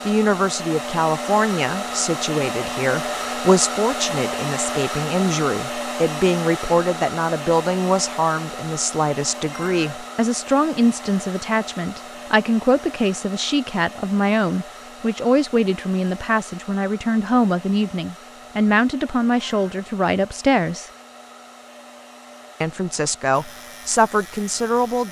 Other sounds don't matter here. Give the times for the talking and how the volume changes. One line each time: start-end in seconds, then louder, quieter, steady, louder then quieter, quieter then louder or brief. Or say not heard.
0.1-20.9 steady
22.6-25.0 brief.